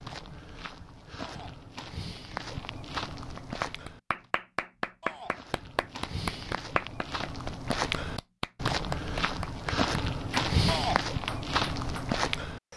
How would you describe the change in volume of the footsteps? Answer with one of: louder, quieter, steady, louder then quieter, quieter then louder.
louder.